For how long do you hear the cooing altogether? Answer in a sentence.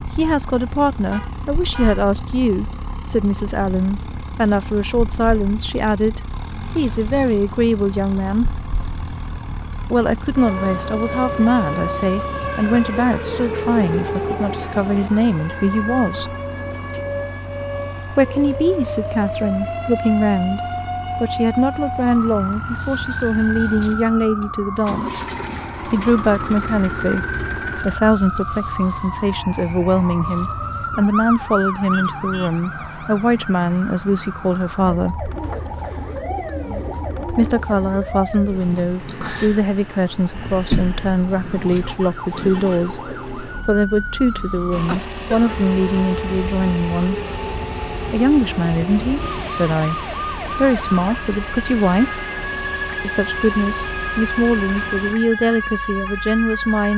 You can hear the cooing for 2 seconds altogether.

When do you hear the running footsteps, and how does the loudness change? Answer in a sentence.
The running footsteps can't be heard in this clip.